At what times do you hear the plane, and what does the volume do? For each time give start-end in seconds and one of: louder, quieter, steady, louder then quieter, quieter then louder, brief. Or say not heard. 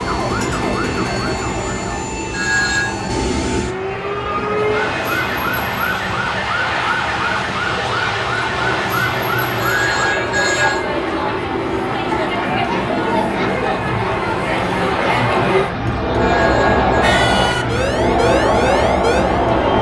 0.0-19.7 steady.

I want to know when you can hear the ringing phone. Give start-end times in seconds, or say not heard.
2.3-3.0, 9.6-10.8, 16.1-17.1.